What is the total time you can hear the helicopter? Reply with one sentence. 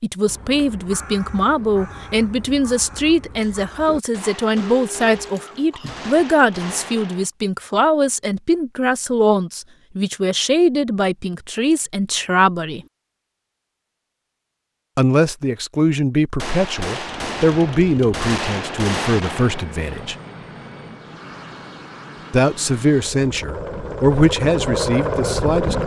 You can hear the helicopter for 9 seconds altogether.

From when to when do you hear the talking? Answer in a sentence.
You can hear the talking from 0.0 to 12.8 s, from 14.9 to 20.1 s and from 22.3 to 25.8 s.